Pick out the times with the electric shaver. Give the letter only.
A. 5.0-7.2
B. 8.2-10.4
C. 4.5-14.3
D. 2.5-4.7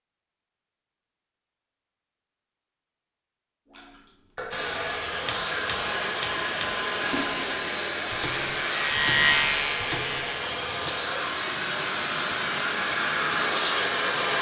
B.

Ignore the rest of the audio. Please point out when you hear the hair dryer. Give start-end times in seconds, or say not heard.
4.5-14.3.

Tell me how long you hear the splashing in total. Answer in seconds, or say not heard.
7 s.